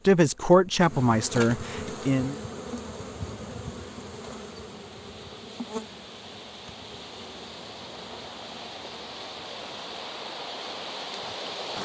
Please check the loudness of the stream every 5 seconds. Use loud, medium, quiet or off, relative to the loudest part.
quiet, medium, loud.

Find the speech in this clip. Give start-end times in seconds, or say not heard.
0.1-2.4.